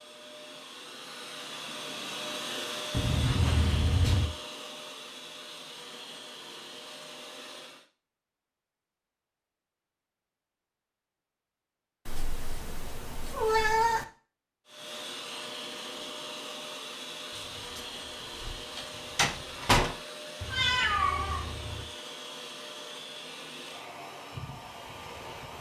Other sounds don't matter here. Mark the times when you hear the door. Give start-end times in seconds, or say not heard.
17.4-19.9.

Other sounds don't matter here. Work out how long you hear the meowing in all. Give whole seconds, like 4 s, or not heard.
5 s.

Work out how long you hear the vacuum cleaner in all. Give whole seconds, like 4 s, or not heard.
19 s.